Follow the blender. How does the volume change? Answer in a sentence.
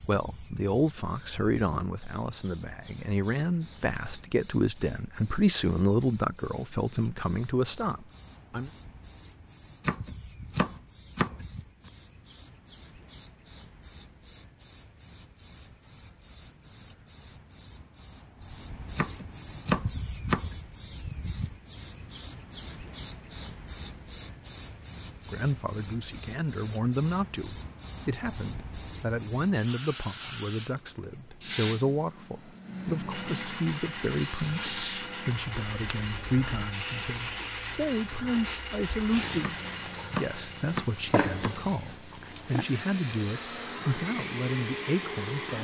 The volume of the blender goes down, then up.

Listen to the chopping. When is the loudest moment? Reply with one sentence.
The volume of the chopping peaks at 20 seconds.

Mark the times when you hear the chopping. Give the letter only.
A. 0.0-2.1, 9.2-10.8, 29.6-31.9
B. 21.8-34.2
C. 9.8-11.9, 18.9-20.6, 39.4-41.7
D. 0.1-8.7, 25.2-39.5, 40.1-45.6
C.